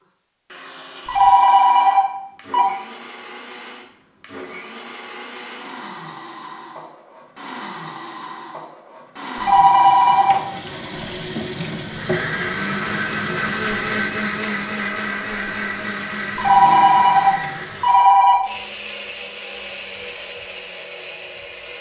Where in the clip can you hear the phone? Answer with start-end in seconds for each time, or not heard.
1.1-2.6, 9.4-10.4, 16.4-18.4.